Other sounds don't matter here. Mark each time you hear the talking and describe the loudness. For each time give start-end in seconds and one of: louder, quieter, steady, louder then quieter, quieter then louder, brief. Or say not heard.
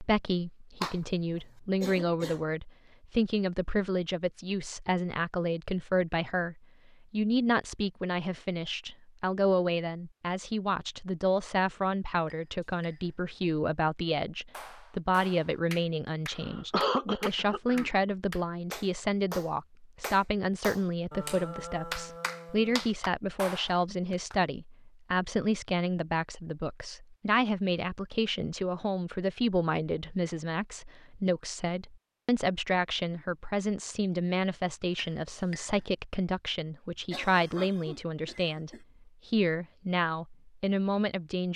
0.0-41.5 steady.